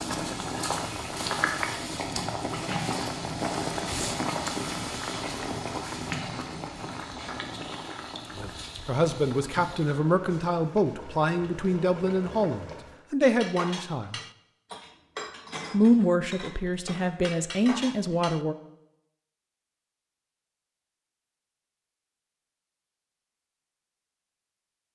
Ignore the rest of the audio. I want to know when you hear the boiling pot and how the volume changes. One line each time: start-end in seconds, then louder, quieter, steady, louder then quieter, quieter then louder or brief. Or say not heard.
0.0-13.1 quieter.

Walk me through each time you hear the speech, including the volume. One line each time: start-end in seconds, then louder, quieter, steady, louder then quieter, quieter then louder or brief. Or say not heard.
8.3-14.2 steady
15.7-18.6 brief.